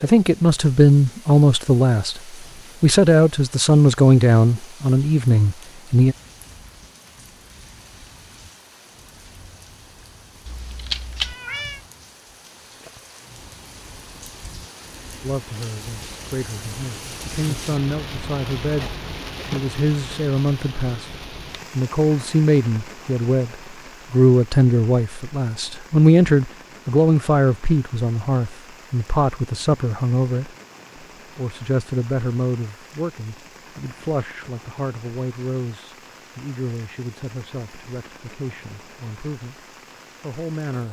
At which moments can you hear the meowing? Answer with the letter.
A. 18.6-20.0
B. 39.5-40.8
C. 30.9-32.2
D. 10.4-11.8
D.